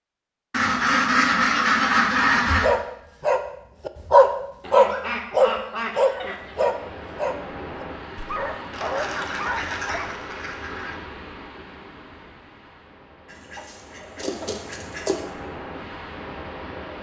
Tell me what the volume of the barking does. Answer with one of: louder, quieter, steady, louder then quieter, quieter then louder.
quieter.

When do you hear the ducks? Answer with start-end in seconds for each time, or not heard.
0.5-2.7, 4.6-6.7, 8.7-10.9, 13.3-15.2.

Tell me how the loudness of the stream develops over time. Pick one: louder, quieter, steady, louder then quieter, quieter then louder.
quieter then louder.